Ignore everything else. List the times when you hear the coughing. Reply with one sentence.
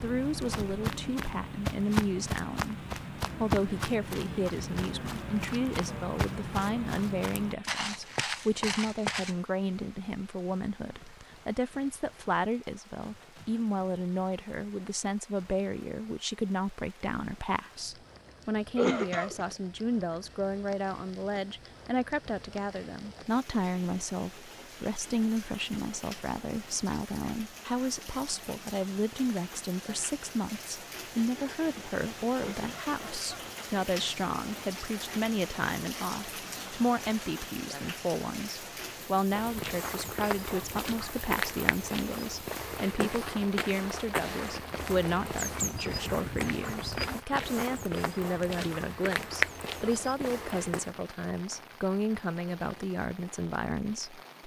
You can hear the coughing from 18.8 to 19.4 s and from 32.4 to 33.5 s.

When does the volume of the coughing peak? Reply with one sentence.
The volume of the coughing peaks at 19 seconds.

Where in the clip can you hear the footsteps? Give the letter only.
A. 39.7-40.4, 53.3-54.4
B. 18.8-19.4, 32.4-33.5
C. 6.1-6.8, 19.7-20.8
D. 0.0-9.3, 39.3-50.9
D.